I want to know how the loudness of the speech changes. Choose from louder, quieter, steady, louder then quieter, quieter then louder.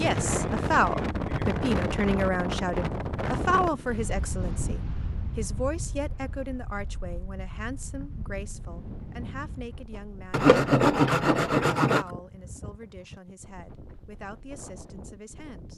quieter.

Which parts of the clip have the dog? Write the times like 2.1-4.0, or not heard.
not heard.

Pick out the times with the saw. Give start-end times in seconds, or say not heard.
10.3-12.1.